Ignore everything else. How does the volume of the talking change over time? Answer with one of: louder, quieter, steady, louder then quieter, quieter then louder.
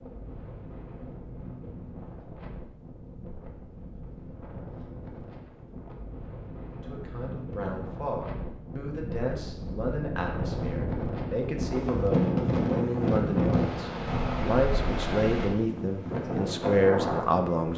louder.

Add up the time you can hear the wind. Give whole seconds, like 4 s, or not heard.
18 s.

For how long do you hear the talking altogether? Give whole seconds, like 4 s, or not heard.
11 s.